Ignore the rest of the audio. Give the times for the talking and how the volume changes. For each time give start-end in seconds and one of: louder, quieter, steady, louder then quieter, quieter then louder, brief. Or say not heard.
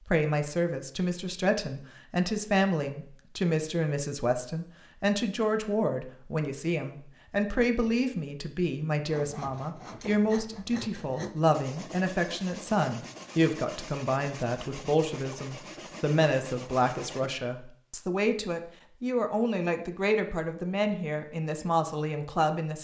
0.1-22.7 steady.